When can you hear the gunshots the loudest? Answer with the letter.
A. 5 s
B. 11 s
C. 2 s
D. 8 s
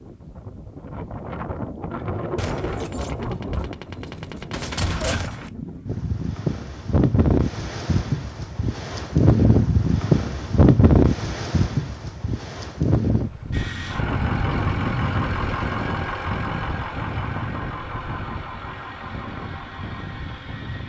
A.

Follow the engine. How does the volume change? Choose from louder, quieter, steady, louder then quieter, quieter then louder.
quieter.